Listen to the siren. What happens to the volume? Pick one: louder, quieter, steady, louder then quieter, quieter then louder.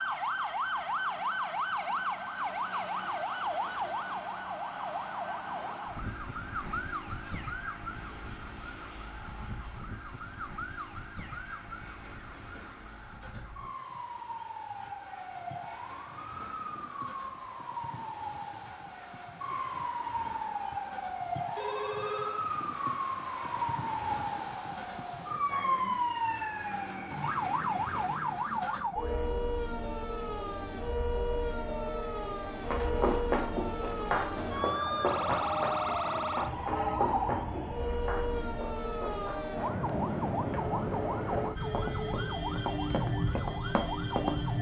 quieter then louder.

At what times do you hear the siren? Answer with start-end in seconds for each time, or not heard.
0.0-44.5.